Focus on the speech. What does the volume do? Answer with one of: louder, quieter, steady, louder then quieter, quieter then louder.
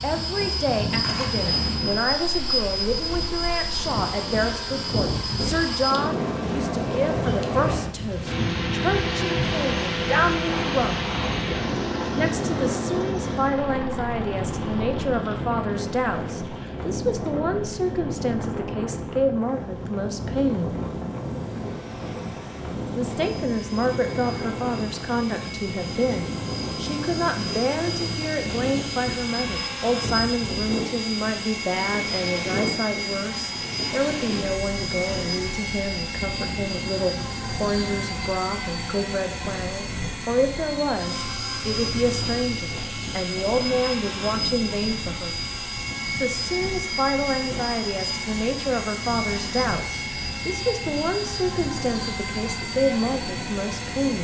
steady.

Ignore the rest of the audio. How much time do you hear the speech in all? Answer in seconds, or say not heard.
50 s.